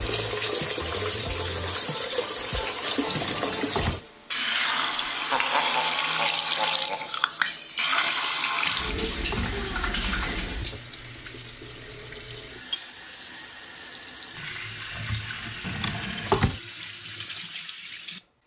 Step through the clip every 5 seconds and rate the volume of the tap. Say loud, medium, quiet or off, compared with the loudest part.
loud, loud, medium, medium.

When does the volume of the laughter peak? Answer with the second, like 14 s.
6 s.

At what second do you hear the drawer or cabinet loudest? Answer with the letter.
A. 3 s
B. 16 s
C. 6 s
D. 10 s
B.